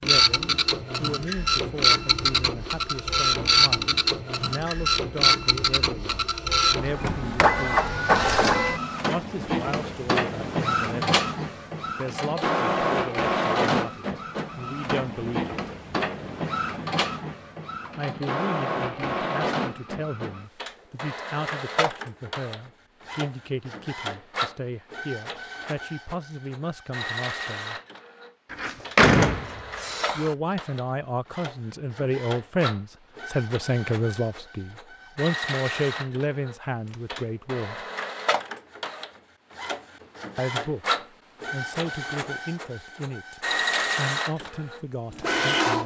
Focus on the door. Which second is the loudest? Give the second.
29 s.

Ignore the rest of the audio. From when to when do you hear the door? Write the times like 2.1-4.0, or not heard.
6.8-8.4, 28.5-30.4.